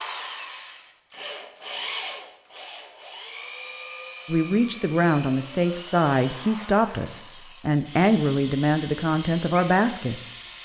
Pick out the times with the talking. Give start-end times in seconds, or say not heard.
4.2-10.2.